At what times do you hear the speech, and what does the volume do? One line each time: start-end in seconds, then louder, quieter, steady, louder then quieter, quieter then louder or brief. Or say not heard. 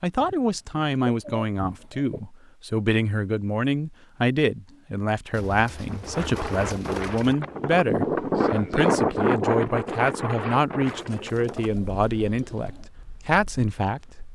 0.0-14.1 steady.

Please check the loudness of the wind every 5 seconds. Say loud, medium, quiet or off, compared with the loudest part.
off, loud, medium.